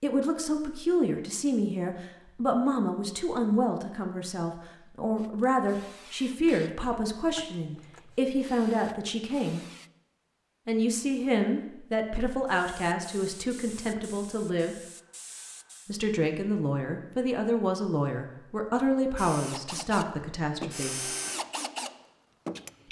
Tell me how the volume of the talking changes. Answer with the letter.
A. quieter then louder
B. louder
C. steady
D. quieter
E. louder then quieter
C.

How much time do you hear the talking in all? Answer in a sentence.
The talking can be heard for 19 seconds in total.